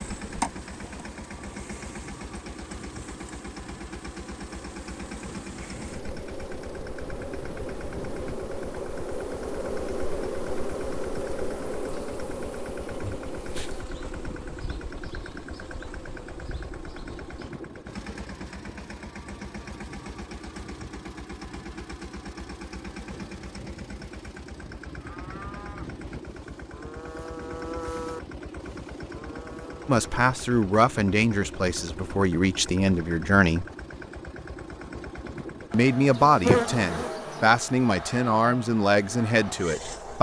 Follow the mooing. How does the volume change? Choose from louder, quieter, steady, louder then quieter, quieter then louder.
louder then quieter.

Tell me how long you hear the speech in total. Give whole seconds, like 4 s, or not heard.
8 s.